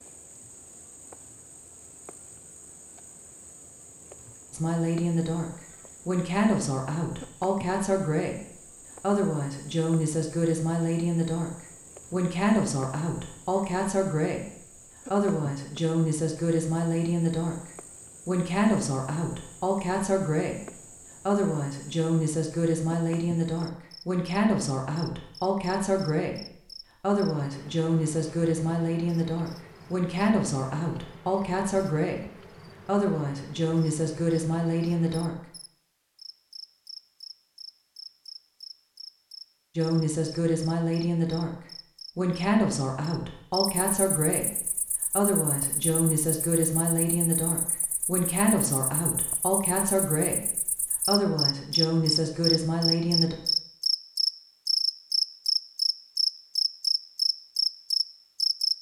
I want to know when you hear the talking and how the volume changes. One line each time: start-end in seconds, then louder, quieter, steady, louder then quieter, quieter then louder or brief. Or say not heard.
4.5-11.5 steady
12.1-17.6 steady
18.2-35.4 steady
39.8-41.5 brief
42.1-53.4 steady.